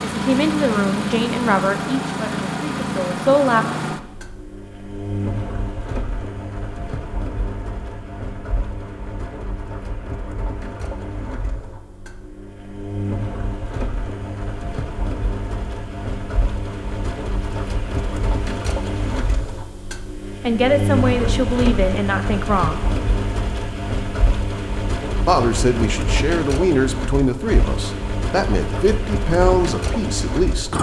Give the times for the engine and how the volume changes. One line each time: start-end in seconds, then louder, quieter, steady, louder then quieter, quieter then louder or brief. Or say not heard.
0.0-30.7 quieter then louder.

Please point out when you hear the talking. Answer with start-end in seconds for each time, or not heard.
0.1-3.6, 20.4-22.8, 25.2-30.7.